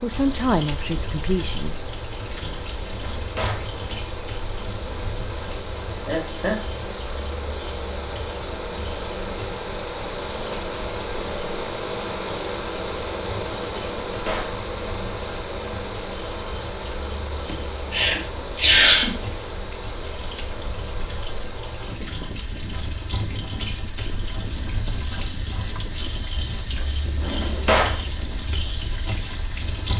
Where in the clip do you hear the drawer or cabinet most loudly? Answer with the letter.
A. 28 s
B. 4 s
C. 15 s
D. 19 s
A.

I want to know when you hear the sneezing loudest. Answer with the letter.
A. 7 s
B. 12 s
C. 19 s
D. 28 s
C.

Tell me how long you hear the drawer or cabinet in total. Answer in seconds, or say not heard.
2 s.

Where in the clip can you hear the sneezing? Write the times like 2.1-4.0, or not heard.
6.0-6.5, 17.4-19.1.